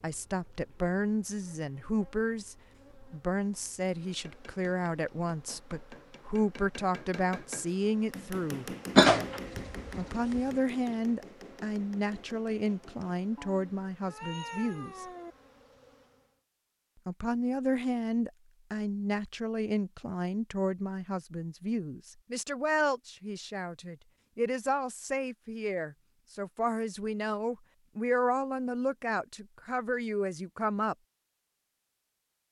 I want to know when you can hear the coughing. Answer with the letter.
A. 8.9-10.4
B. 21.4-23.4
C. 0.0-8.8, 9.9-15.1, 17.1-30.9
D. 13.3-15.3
A.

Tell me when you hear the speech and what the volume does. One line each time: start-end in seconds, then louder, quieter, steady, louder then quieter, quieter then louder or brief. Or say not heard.
0.0-8.8 steady
9.9-15.1 quieter
17.1-30.9 steady.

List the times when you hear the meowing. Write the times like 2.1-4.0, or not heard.
13.3-15.3.